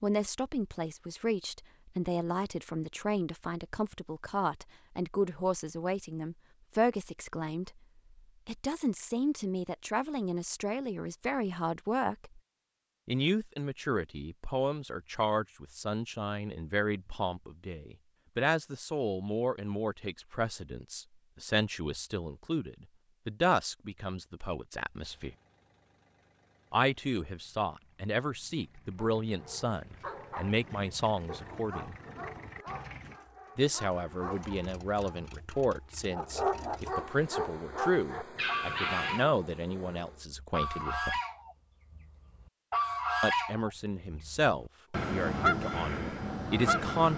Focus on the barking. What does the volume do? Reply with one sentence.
The loudness of the barking goes up.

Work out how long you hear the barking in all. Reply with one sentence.
You can hear the barking for 10 seconds altogether.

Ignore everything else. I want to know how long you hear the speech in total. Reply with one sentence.
The speech can be heard for 41 seconds in total.